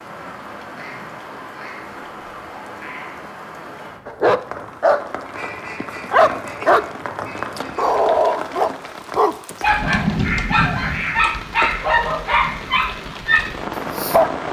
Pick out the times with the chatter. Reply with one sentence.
You can't hear the chatter here.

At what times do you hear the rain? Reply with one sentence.
The rain can be heard from 0.0 to 14.4 s.